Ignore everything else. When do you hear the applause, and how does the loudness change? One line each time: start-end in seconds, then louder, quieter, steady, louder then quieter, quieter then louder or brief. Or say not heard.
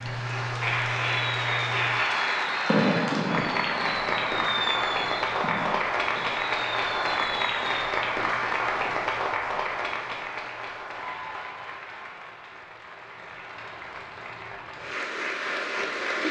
0.0-16.2 quieter.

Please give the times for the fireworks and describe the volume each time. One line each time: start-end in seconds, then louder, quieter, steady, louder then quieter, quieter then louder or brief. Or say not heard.
0.9-8.0 louder then quieter.